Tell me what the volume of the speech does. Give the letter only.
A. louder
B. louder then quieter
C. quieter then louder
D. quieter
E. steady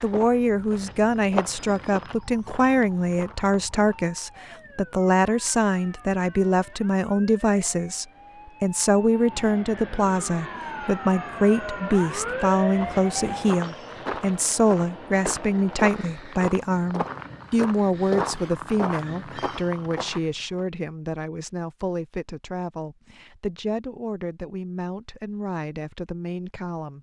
D.